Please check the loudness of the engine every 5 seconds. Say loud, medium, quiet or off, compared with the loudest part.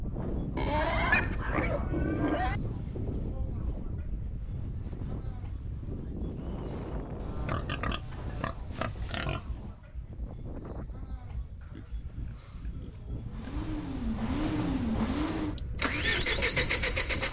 off, off, loud, loud.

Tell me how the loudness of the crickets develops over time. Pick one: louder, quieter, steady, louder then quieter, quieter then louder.
steady.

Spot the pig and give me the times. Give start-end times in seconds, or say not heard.
0.6-2.6, 7.2-9.8, 11.6-13.6.